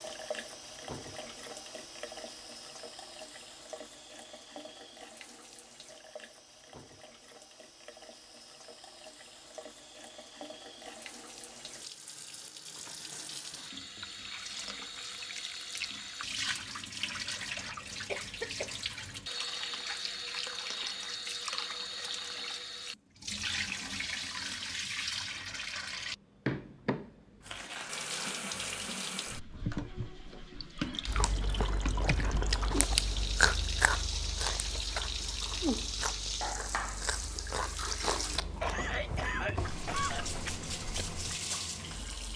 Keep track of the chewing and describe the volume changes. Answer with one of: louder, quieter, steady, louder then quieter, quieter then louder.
quieter.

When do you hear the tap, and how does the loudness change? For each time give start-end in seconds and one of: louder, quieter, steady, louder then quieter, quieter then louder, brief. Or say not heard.
0.0-42.3 louder.